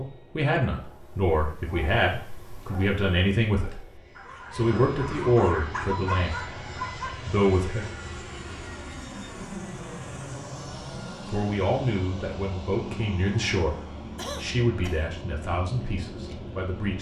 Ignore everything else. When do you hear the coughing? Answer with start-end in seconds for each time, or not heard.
14.2-15.0.